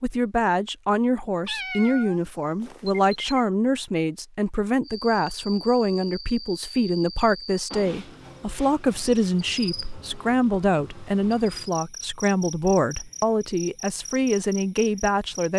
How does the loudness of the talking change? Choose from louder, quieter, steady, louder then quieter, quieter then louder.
steady.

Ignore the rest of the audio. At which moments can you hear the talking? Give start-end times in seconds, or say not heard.
0.0-15.5.